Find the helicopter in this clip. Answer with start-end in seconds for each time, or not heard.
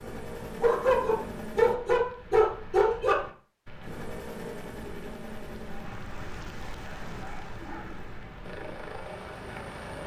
0.0-1.8, 3.8-5.9, 8.4-10.0.